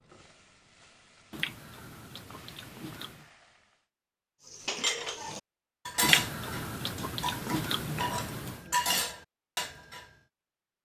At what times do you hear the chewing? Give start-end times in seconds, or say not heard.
1.3-3.3, 6.0-8.7.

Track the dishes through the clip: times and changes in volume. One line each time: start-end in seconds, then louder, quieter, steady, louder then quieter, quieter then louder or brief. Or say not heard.
4.5-10.1 quieter then louder.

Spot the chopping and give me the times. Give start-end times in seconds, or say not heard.
not heard.